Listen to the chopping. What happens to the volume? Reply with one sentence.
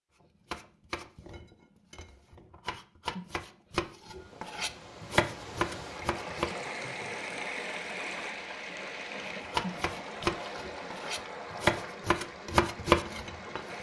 The volume of the chopping goes up.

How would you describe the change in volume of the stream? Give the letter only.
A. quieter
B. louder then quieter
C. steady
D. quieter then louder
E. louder
B.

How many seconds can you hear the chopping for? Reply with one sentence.
The chopping can be heard for 11 seconds in total.